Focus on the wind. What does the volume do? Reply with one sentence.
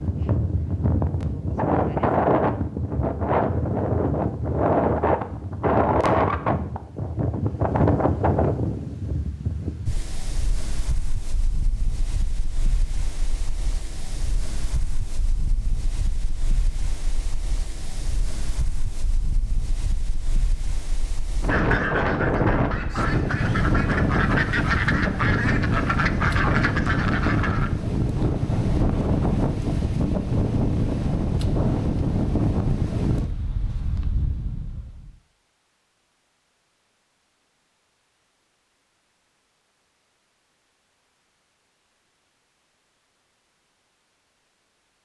The volume of the wind goes down, then up.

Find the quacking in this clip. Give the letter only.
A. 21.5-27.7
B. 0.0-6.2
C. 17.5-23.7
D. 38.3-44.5
A.